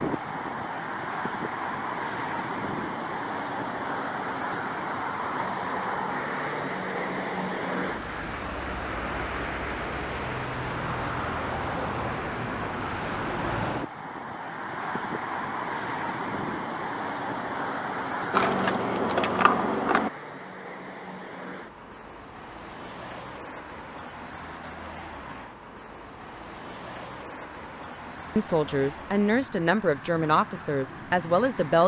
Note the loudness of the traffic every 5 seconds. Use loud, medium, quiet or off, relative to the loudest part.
loud, loud, loud, loud, medium, medium, medium.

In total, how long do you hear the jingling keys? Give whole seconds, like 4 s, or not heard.
3 s.